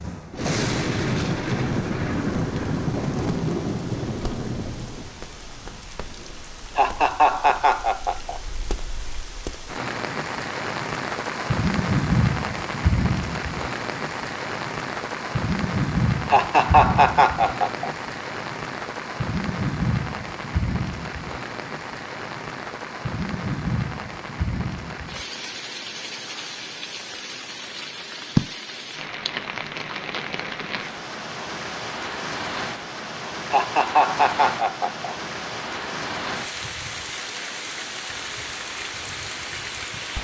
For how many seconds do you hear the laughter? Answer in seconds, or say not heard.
5 s.